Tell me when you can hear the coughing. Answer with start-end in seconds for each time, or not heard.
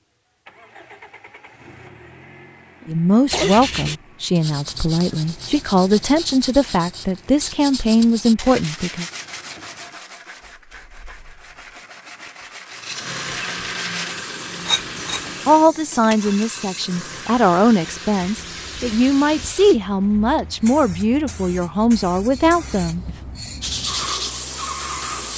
2.8-3.5.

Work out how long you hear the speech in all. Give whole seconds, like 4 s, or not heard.
14 s.